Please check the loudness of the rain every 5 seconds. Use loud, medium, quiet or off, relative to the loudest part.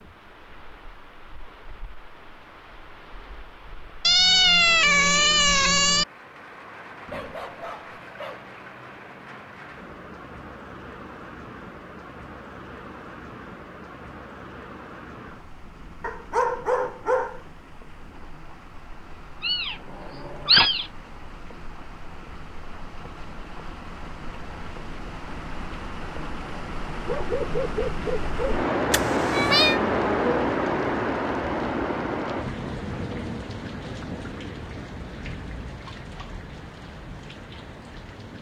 quiet, quiet, quiet, quiet, quiet, loud, loud, quiet.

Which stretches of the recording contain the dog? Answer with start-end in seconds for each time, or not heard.
7.1-8.4, 16.0-17.4, 27.1-28.4.